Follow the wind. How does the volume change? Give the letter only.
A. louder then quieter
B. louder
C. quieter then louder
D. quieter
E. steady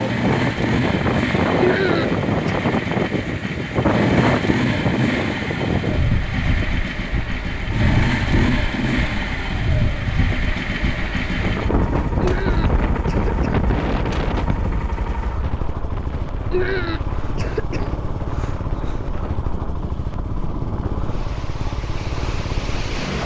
D.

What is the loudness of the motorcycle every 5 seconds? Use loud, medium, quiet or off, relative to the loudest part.
loud, loud, medium, medium, medium.